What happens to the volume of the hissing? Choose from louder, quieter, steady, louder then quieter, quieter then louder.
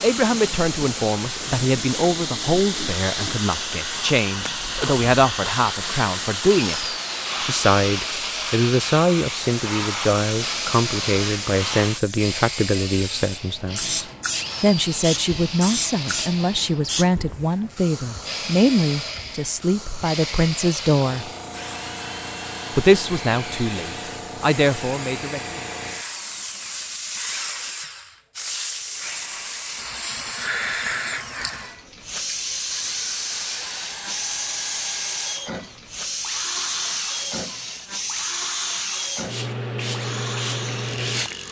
quieter then louder.